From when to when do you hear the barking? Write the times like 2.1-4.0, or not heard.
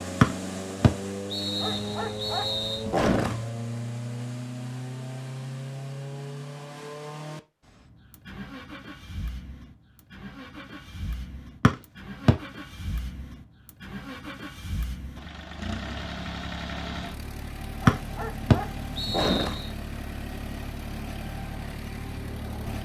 1.6-3.5, 17.8-19.6.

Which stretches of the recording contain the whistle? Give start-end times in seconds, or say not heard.
0.2-2.8, 11.6-12.3, 17.9-19.7.